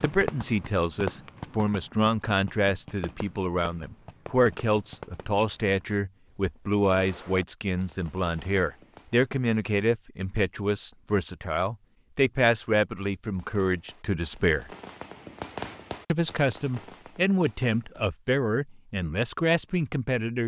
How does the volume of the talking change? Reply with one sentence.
The volume of the talking stays about the same.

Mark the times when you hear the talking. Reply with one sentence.
The talking can be heard from 0.0 to 14.7 s and from 16.1 to 20.4 s.